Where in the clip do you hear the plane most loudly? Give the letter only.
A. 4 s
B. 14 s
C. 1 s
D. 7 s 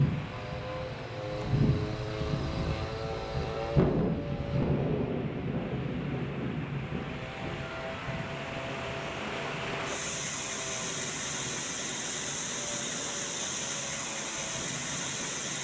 A.